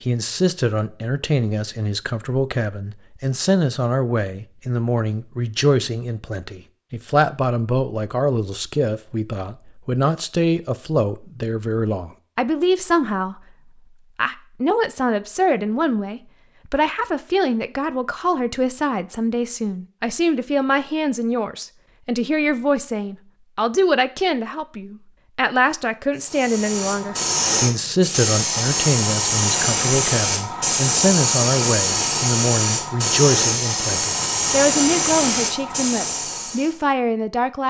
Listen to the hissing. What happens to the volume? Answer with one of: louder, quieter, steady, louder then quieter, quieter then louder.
steady.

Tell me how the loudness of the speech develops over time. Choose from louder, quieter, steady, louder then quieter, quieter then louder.
steady.